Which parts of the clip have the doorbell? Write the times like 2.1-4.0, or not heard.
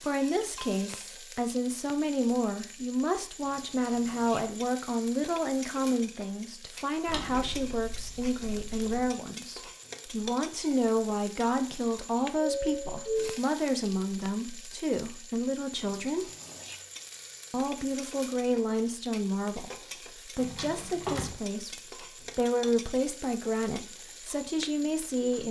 12.5-13.4.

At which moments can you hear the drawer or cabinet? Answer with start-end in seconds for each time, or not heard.
7.0-9.1, 20.4-21.4.